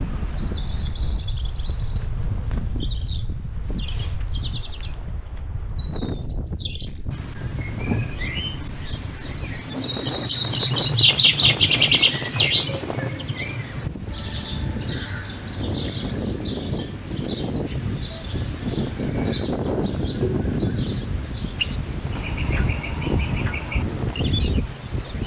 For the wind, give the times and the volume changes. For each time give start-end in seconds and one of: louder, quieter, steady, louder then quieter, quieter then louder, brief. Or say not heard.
0.0-25.2 louder.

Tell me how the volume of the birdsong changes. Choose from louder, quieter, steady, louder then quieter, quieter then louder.
louder then quieter.